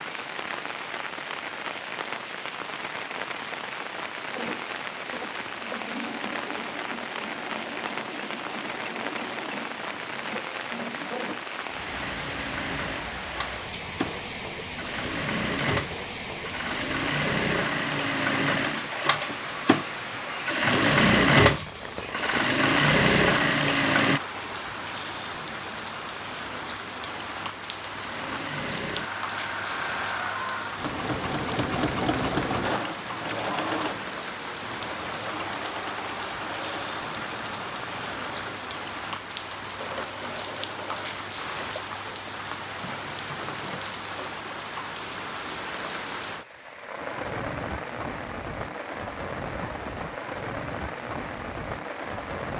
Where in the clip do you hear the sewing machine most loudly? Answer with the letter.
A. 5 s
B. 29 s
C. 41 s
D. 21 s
D.